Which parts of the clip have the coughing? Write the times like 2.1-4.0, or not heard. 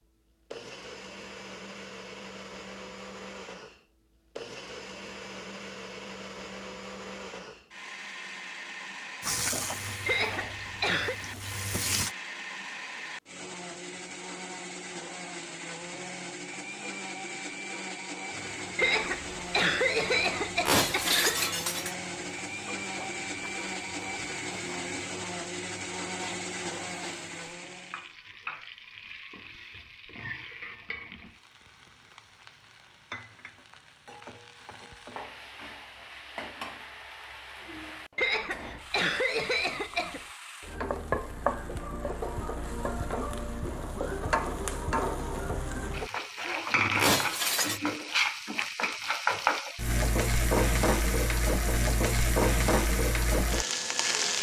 10.1-11.2, 18.8-21.6, 38.1-40.2.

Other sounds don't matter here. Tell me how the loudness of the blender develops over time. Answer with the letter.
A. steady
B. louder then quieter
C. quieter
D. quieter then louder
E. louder
E.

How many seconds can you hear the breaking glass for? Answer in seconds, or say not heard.
2 s.